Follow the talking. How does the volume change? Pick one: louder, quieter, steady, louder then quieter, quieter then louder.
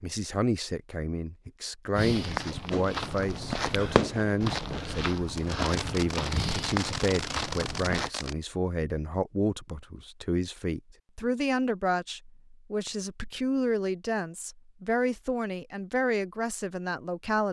steady.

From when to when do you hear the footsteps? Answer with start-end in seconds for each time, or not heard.
1.9-8.1.